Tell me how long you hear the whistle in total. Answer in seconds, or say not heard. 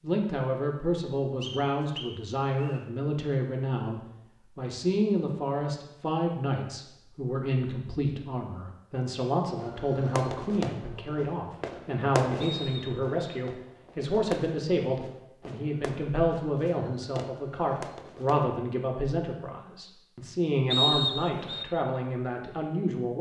3 s.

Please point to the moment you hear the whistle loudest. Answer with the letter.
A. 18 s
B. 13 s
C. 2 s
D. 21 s
D.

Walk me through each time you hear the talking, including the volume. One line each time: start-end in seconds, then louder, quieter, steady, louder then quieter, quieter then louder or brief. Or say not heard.
0.0-23.1 steady.